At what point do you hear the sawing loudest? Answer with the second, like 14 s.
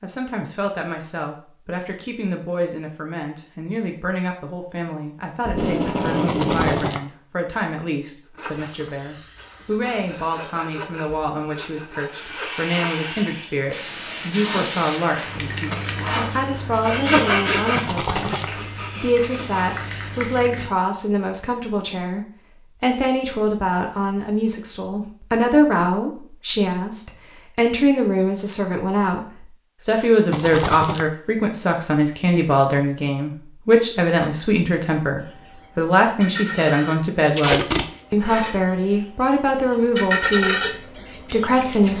17 s.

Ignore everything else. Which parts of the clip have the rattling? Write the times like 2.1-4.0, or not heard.
6.2-7.0, 17.8-18.5, 30.3-31.1.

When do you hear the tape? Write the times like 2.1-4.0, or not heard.
5.5-7.0, 15.1-15.8, 37.3-37.9.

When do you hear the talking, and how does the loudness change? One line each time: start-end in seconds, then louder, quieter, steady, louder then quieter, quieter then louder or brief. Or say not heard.
0.0-40.6 louder
41.2-41.9 brief.